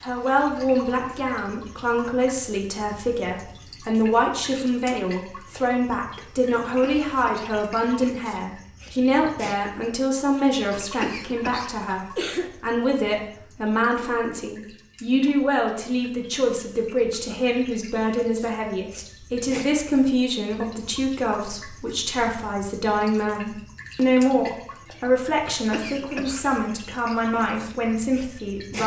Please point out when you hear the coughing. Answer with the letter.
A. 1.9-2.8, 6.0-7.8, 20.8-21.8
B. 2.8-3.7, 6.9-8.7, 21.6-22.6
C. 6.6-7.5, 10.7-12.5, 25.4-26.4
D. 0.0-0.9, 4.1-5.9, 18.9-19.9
C.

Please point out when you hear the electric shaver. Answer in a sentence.
You can't hear the electric shaver here.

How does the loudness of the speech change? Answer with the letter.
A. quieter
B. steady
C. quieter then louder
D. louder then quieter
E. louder
B.